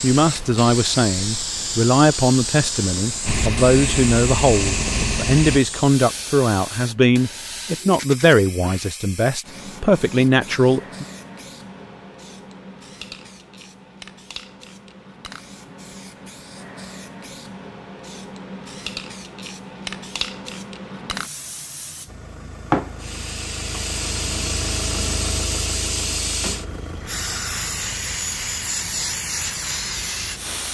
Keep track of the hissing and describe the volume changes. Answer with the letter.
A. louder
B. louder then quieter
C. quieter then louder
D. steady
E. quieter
C.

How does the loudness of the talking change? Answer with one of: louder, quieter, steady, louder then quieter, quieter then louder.
steady.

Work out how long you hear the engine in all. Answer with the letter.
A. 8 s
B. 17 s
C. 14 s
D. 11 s
D.